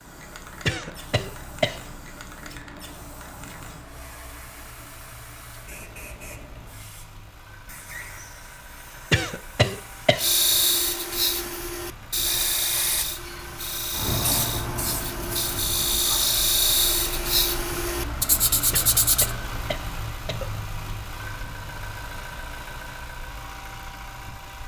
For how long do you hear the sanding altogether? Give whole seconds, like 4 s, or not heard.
9 s.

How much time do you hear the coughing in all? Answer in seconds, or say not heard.
4 s.